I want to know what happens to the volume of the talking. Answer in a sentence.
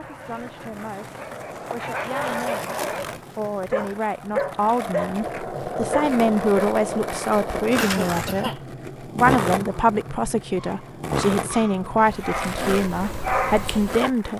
The loudness of the talking goes up.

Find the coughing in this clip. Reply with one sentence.
You can hear the coughing from 7.8 to 8.6 s.